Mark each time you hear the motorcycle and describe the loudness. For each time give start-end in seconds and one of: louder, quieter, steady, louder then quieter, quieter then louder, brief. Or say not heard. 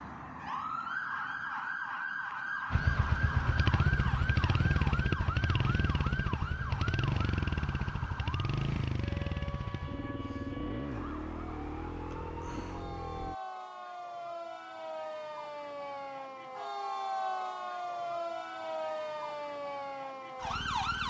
2.7-13.3 quieter.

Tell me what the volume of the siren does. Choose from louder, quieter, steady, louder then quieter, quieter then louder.
quieter then louder.